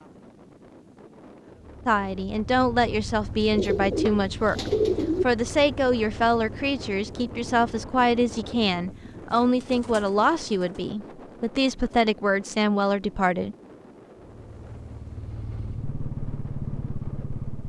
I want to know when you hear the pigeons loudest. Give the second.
5 s.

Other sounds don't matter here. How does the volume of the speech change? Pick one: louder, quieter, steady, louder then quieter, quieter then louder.
steady.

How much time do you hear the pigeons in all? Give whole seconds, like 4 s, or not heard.
3 s.